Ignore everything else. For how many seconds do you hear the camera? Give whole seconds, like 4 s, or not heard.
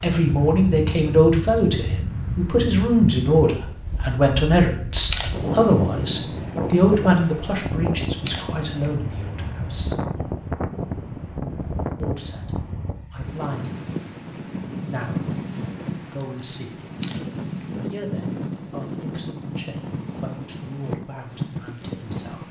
2 s.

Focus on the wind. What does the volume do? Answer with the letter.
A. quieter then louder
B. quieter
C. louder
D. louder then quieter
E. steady
E.